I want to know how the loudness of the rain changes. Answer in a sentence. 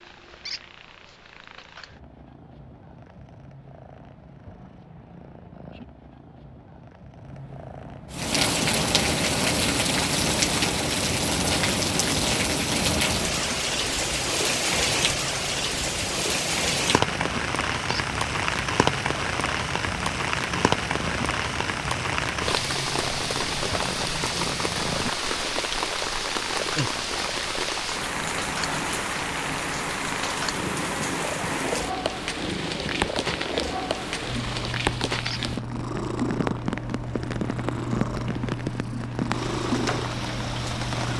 The volume of the rain goes down.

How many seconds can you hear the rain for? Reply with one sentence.
You can hear the rain for 33 seconds altogether.